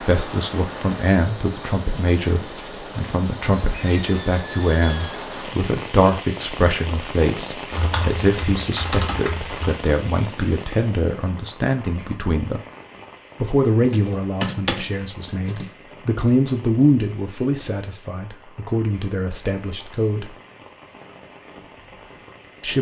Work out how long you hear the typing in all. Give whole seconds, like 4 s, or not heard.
4 s.